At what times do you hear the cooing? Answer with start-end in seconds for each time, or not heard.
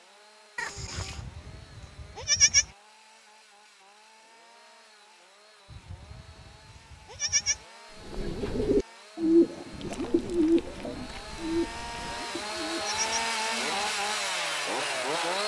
8.1-13.9.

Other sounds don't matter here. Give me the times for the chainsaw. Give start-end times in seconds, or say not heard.
0.0-15.4.